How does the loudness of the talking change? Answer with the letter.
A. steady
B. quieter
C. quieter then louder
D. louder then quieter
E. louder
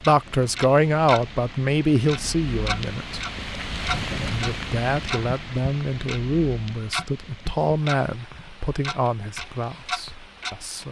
B.